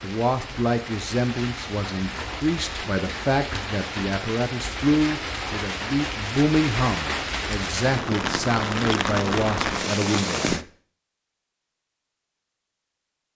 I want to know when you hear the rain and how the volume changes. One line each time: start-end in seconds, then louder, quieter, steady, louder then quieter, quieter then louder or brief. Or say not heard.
0.0-10.7 louder.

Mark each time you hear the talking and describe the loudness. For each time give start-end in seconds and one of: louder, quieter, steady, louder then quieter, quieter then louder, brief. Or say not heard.
0.0-10.7 steady.